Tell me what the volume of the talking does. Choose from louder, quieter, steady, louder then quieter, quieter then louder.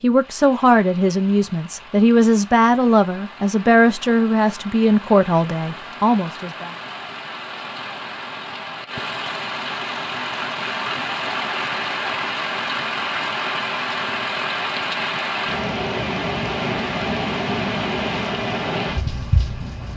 steady.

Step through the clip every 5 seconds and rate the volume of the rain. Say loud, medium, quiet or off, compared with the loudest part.
quiet, medium, loud, loud.